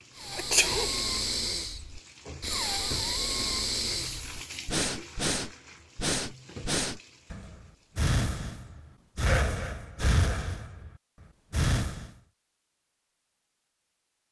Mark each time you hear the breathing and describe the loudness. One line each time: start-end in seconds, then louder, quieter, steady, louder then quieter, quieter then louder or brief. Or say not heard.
0.1-10.9 steady
11.5-12.1 brief.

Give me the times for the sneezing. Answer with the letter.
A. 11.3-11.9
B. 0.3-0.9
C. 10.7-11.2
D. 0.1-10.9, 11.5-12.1
B.